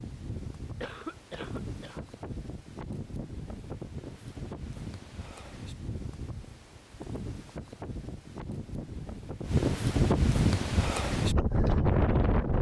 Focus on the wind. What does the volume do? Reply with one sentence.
The loudness of the wind goes up.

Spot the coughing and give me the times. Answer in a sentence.
The coughing can be heard from 0.8 to 2.0 s.